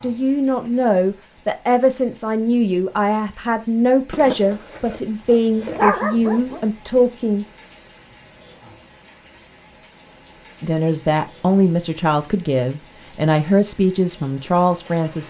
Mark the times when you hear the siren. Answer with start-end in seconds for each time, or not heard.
not heard.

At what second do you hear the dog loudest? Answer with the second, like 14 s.
6 s.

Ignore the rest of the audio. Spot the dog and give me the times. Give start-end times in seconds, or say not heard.
4.1-6.7.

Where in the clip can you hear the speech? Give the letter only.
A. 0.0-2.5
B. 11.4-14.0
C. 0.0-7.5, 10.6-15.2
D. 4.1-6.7
C.